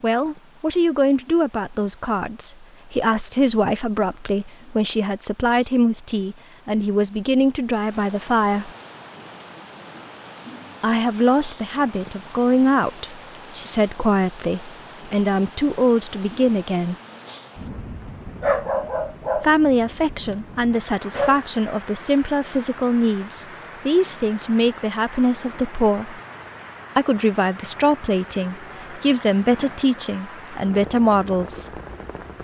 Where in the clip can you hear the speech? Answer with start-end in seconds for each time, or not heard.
0.0-8.7, 10.8-16.9, 19.4-26.1, 26.9-31.7.